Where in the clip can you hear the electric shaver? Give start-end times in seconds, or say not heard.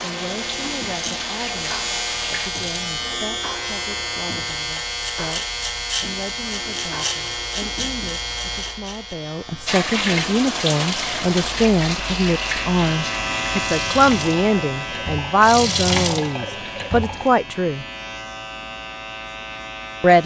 0.0-20.2.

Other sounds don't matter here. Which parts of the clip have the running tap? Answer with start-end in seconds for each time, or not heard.
0.0-2.5, 9.7-17.3.